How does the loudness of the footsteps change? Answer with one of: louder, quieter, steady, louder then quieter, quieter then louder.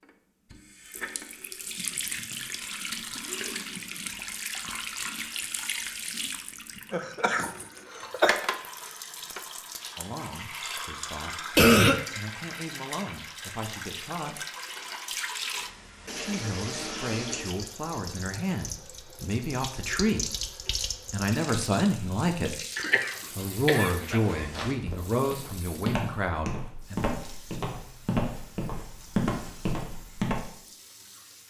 louder.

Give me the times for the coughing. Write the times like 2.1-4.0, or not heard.
6.9-8.4, 11.6-12.0, 22.8-24.4.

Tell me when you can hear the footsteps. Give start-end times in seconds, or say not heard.
24.2-30.4.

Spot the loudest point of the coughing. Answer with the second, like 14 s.
12 s.